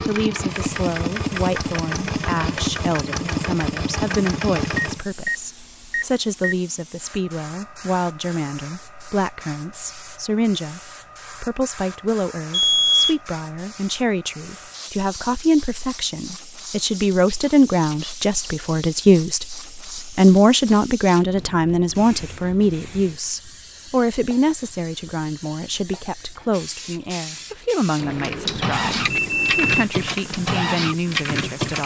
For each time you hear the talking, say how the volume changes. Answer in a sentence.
You can hear the talking from 0.1 to 19.6 s, getting louder; and from 20.1 to 31.8 s, getting quieter.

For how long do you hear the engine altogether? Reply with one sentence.
You can hear the engine for 9 seconds altogether.